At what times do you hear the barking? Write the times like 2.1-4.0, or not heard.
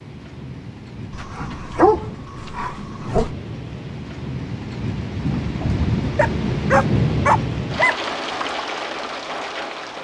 1.1-3.3, 6.2-8.1.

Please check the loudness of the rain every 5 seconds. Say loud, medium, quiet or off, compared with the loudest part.
medium, loud.